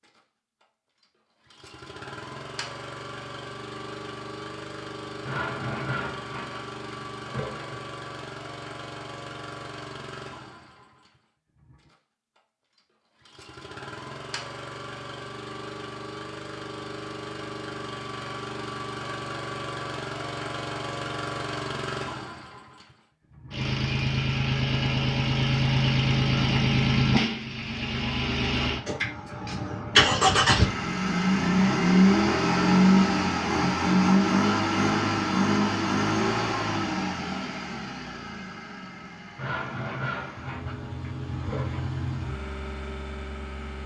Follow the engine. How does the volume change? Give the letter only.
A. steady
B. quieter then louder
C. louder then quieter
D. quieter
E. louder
C.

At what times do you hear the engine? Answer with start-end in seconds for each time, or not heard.
0.0-43.8.